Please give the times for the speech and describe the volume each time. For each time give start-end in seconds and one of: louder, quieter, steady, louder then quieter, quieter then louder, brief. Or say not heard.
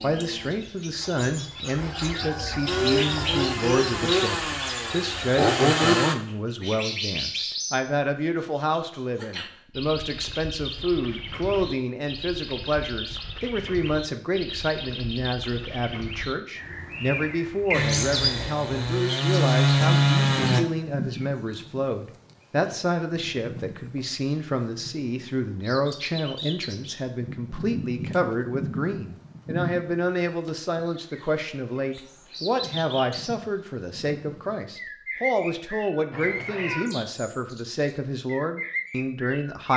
0.0-39.7 steady.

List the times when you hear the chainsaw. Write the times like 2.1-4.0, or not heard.
2.6-6.2, 17.7-20.6.